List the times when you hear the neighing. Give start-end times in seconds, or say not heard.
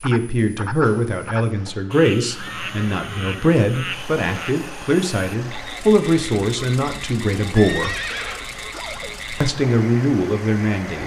1.6-3.5, 7.5-9.2.